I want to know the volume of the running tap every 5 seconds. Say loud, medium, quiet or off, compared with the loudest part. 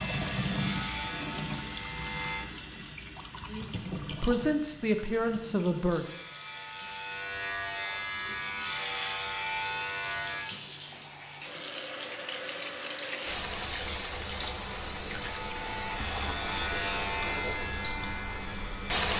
loud, quiet, loud, loud.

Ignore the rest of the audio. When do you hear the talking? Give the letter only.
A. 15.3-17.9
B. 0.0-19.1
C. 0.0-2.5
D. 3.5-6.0
D.